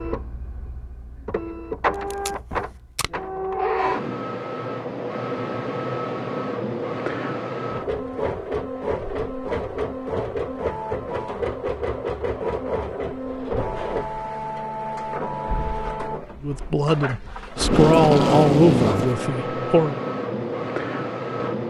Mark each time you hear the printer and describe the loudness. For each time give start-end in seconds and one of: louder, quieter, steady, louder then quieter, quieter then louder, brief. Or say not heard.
0.0-21.6 steady.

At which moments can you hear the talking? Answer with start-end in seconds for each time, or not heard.
16.4-19.9.